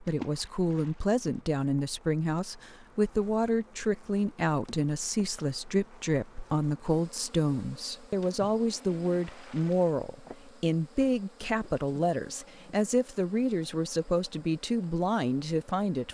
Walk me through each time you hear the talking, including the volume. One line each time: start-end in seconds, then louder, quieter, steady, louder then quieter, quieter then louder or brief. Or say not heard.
0.0-16.0 steady.